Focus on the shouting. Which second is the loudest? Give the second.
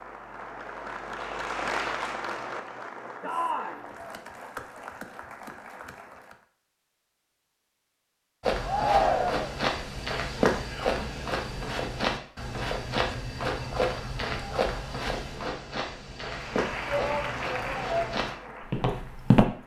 9 s.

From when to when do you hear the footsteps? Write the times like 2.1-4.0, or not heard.
8.4-19.4.